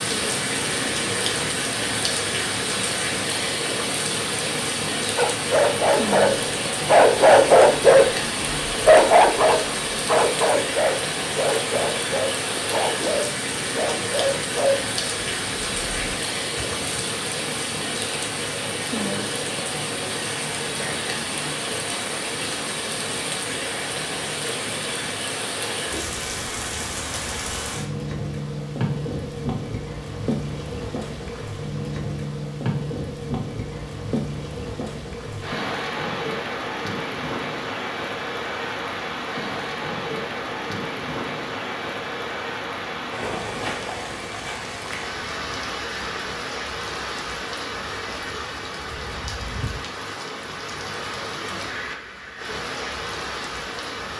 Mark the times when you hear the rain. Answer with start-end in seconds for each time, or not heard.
0.0-54.1.